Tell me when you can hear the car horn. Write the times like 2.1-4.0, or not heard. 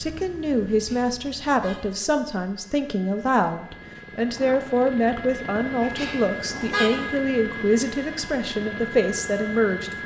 0.7-2.1, 5.8-7.2.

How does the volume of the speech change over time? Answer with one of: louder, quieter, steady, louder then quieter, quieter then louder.
steady.